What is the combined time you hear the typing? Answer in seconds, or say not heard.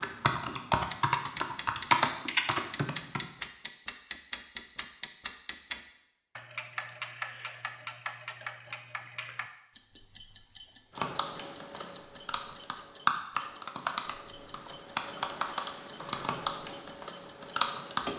10 s.